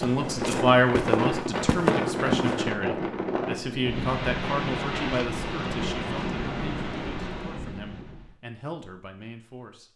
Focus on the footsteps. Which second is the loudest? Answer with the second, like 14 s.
2 s.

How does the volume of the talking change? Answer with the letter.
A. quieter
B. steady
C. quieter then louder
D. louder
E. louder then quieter
A.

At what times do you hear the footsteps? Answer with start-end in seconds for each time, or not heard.
0.0-2.6.